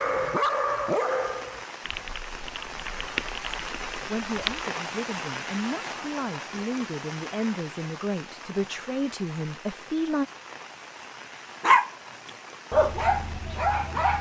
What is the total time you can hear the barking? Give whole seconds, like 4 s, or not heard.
4 s.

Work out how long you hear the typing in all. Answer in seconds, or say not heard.
3 s.